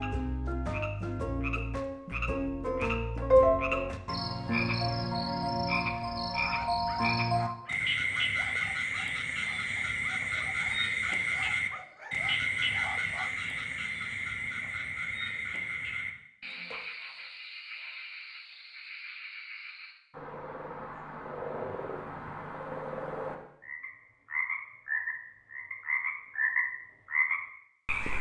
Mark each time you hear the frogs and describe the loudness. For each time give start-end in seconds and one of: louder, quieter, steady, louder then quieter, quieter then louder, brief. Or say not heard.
0.0-28.1 quieter then louder.